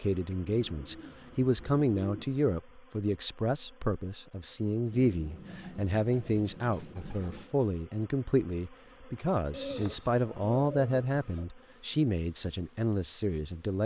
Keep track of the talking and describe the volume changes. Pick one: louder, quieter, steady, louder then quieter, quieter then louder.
steady.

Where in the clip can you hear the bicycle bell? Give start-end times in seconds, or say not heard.
not heard.